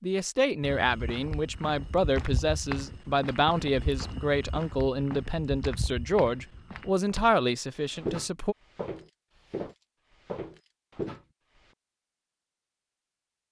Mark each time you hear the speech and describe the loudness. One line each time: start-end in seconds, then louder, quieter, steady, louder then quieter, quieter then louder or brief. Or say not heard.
0.0-8.6 steady.